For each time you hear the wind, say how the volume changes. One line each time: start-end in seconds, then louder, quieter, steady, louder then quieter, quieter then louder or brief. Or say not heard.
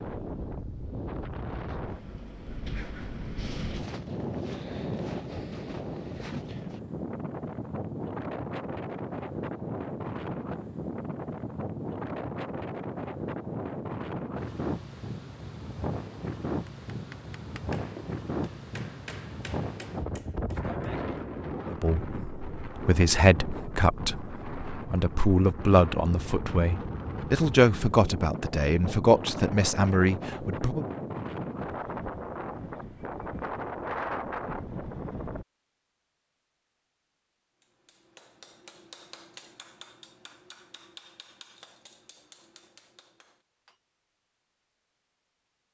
0.0-35.5 steady.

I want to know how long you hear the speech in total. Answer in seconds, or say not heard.
9 s.